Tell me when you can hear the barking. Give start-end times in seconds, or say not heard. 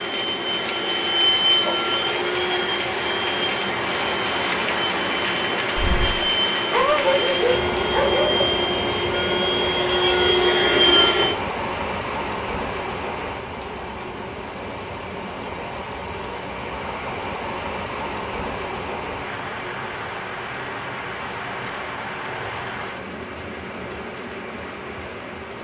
5.8-8.5.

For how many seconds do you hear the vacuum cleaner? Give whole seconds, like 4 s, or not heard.
11 s.